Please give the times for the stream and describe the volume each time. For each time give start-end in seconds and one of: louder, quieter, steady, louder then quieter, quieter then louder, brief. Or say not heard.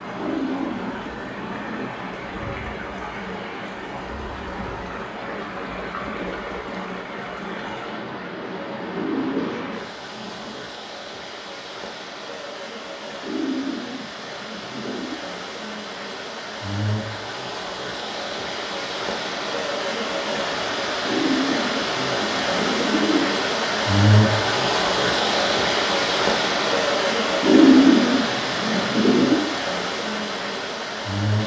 0.0-31.4 louder.